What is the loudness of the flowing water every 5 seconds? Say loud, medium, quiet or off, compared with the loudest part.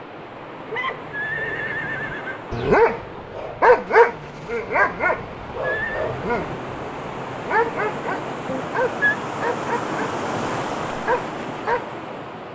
medium, loud, loud.